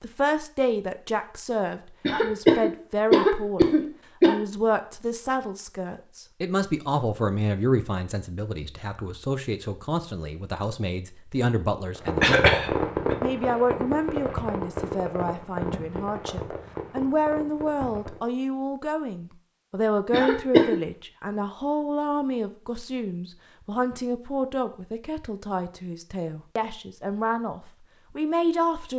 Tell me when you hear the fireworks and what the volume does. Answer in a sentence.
You can hear the fireworks from 11.9 to 18.2 s, getting quieter.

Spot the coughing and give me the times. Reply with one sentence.
The coughing can be heard from 2.0 to 4.3 s, from 12.2 to 13.2 s and from 20.1 to 20.8 s.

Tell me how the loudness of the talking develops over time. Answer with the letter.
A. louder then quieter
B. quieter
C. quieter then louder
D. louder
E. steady
E.